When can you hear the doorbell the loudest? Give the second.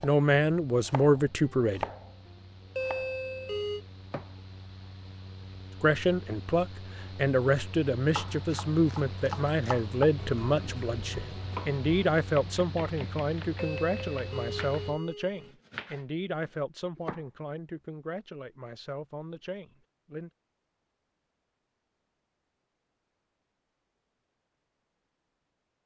3 s.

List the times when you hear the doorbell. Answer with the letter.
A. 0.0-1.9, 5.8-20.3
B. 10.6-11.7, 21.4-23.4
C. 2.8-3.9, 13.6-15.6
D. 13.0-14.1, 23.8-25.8
C.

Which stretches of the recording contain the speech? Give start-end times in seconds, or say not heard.
0.0-1.9, 5.8-20.3.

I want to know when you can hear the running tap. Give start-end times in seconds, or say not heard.
not heard.